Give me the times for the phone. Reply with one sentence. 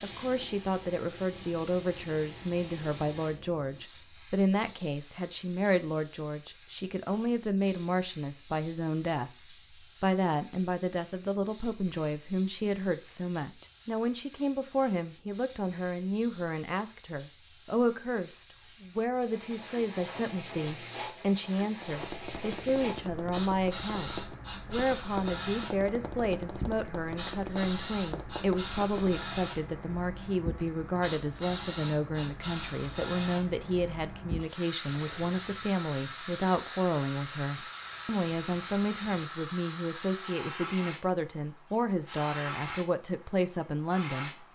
You can't hear the phone here.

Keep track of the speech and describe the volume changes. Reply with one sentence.
The loudness of the speech stays about the same.